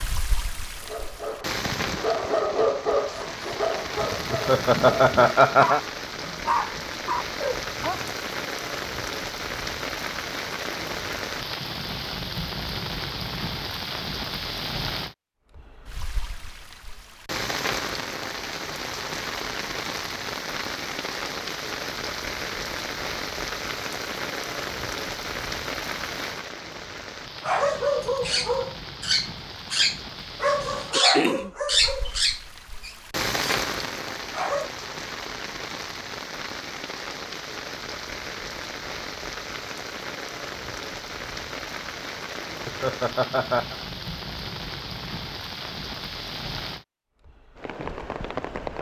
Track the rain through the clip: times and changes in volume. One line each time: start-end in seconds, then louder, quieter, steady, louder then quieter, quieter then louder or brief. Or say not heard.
0.0-48.7 steady.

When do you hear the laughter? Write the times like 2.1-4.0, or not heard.
4.3-5.8, 42.6-43.8.